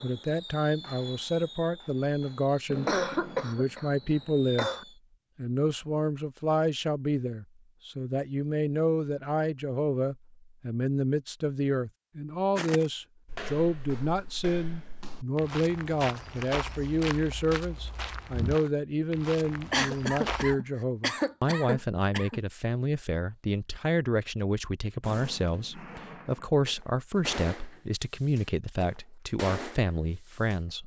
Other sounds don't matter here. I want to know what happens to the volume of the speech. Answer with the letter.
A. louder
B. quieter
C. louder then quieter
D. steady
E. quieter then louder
D.